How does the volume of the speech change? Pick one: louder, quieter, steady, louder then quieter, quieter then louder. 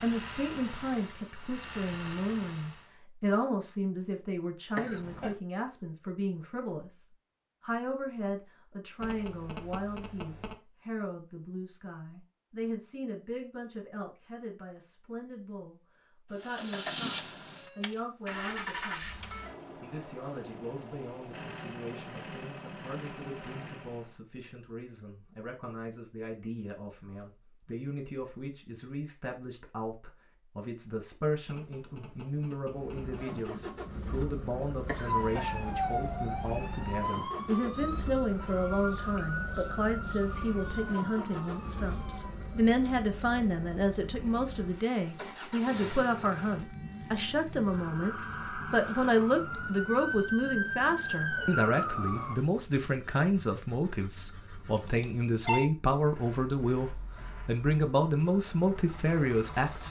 quieter then louder.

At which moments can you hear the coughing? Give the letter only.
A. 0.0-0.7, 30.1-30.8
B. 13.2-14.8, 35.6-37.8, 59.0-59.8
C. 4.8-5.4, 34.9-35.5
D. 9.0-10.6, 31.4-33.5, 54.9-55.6
C.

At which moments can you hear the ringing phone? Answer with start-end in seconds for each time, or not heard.
9.0-10.6, 31.4-33.5, 54.9-55.6.